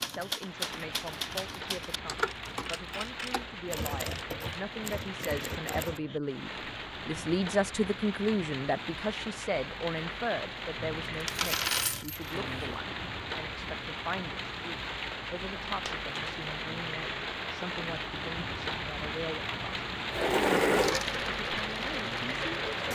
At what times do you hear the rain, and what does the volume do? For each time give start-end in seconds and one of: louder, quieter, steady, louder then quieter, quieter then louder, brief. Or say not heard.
0.0-22.9 louder.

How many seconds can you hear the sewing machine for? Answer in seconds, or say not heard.
3 s.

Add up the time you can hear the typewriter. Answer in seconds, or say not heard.
6 s.